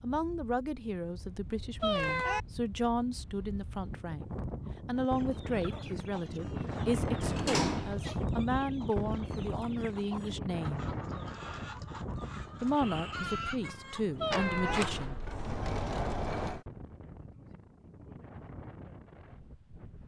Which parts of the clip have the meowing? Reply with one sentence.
You can hear the meowing from 1.8 to 2.4 s and from 14.2 to 14.8 s.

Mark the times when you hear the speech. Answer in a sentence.
You can hear the speech from 0.0 to 10.9 s and from 12.6 to 15.2 s.